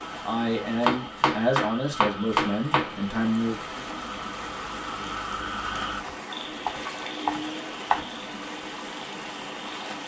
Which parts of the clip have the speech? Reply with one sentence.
The speech can be heard from 0.2 to 3.9 s.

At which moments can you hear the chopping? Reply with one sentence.
The chopping can be heard from 0.8 to 3.0 s and from 6.0 to 8.1 s.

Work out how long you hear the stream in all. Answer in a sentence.
The stream can be heard for 10 seconds in total.